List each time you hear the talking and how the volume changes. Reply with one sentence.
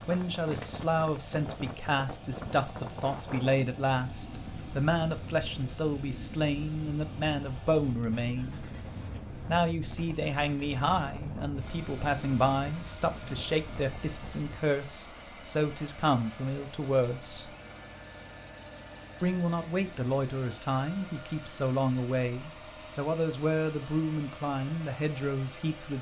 The talking can be heard from 0.1 to 8.6 s, at a steady volume; from 9.4 to 17.5 s, at a steady volume; and from 19.2 to 25.9 s, at a steady volume.